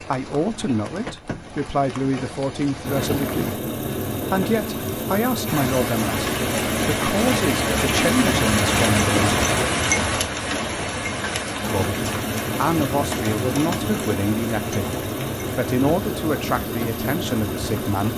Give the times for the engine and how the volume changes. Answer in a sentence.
The engine can be heard from 2.8 to 9.7 s, at a steady volume; and from 11.6 to 18.1 s, at a steady volume.